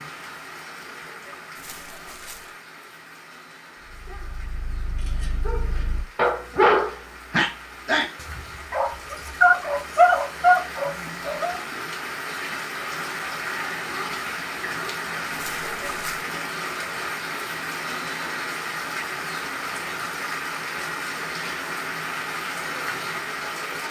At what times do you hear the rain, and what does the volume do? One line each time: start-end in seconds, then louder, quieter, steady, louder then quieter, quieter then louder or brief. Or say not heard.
0.0-23.8 louder.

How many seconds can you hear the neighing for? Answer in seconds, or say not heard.
2 s.